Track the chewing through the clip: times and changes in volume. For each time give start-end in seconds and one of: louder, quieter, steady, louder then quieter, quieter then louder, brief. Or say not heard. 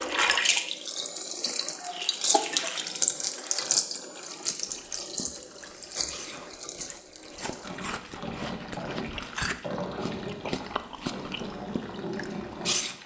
4.5-13.0 louder.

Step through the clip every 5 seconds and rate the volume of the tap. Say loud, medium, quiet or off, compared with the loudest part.
loud, medium, medium.